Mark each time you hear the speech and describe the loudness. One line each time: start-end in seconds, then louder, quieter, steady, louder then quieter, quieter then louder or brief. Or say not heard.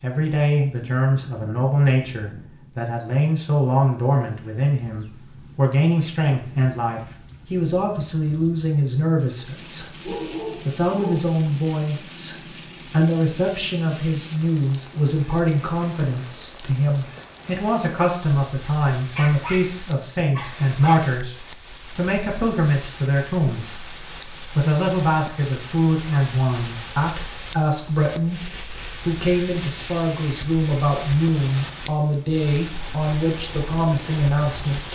0.0-34.8 steady.